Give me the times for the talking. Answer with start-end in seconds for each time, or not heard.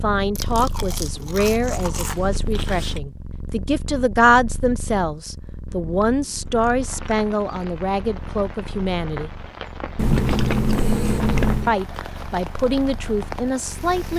0.0-9.3, 11.7-14.1.